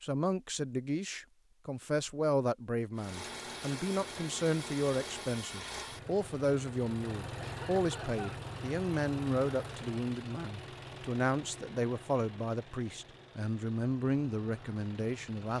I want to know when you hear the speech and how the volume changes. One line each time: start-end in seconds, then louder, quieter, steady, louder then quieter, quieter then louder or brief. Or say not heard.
0.0-15.5 steady.